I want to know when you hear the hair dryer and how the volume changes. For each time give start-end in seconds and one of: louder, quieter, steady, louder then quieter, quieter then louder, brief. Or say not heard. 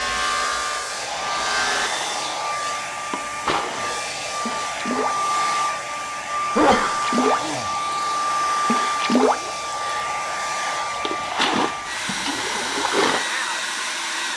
0.0-14.3 steady.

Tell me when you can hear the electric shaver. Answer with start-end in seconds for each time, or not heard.
0.0-1.9.